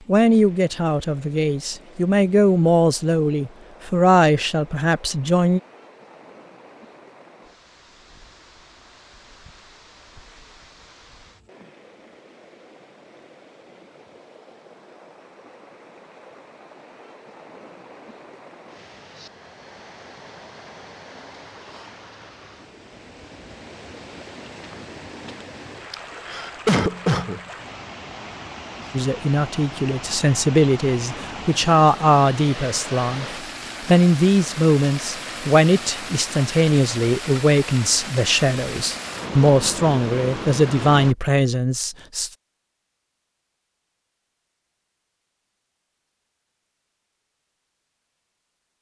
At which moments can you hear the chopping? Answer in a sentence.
The chopping can't be heard in this clip.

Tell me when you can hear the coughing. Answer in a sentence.
You can hear the coughing from 25.9 to 27.4 s.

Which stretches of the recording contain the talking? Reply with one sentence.
You can hear the talking from 0.1 to 5.6 s and from 28.9 to 42.3 s.